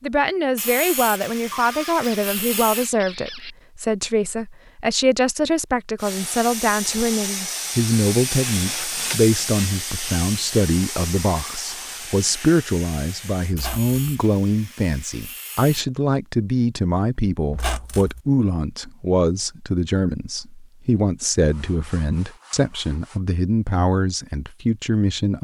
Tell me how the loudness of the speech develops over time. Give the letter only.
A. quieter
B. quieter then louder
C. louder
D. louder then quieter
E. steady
E.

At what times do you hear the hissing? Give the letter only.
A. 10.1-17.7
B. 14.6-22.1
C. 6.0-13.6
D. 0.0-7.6
C.